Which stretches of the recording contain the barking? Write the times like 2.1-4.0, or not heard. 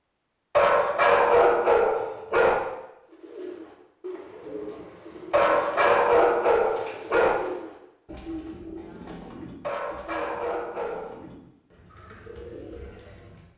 0.6-2.5, 5.3-7.3, 9.6-11.2.